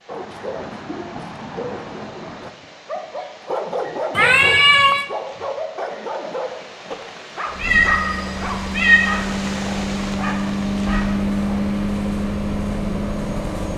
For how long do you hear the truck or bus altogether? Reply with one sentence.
You can hear the truck or bus for 6 seconds altogether.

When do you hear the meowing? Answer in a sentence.
The meowing can be heard from 4.2 to 5.1 s and from 7.6 to 9.2 s.